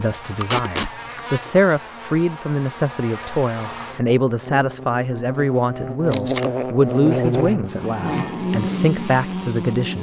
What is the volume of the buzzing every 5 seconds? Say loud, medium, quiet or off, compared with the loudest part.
medium, loud.